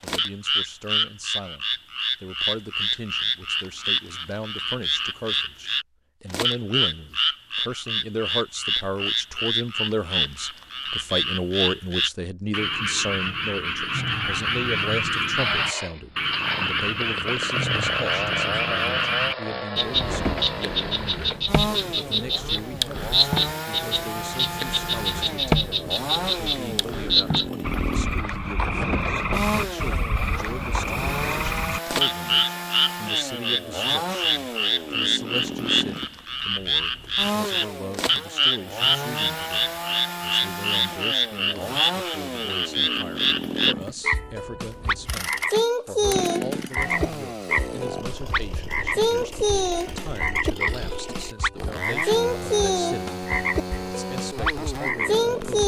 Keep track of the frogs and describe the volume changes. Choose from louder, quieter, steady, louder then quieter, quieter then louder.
steady.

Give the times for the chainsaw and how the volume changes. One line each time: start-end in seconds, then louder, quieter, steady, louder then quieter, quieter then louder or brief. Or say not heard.
15.3-55.6 steady.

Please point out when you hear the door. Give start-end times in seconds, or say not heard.
19.9-20.6, 28.6-29.8.